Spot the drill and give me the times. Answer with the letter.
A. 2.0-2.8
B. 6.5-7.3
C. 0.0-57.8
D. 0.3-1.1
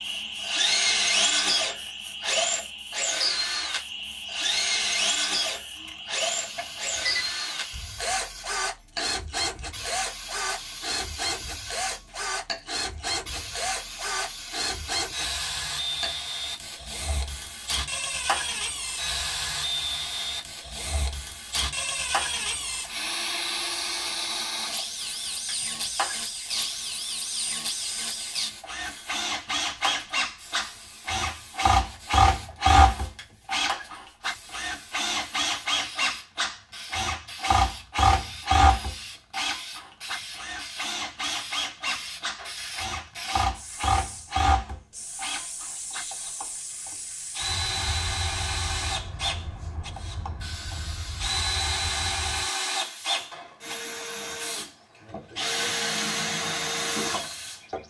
C.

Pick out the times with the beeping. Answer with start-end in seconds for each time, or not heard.
6.5-7.3.